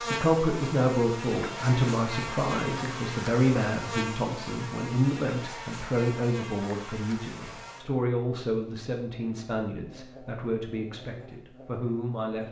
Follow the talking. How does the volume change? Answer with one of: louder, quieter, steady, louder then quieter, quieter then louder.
quieter.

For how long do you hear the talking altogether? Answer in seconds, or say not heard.
12 s.